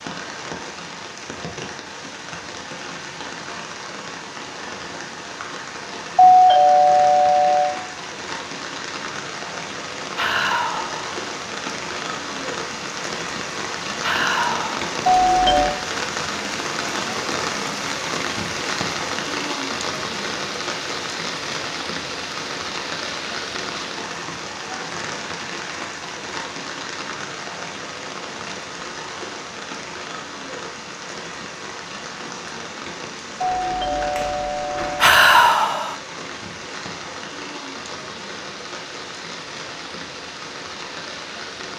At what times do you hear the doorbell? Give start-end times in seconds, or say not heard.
6.2-7.8, 15.1-15.8, 33.4-35.2.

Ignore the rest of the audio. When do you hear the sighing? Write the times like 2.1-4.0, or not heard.
10.2-11.2, 14.0-14.8, 35.0-36.0.